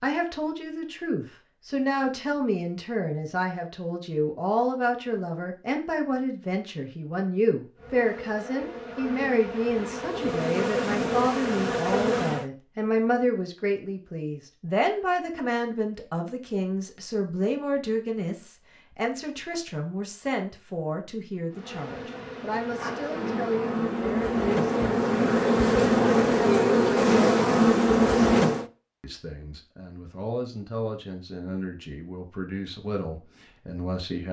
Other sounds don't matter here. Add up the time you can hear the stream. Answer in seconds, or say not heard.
not heard.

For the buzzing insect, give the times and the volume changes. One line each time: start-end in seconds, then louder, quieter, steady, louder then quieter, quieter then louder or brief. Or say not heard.
7.8-12.5 louder
21.5-28.6 louder.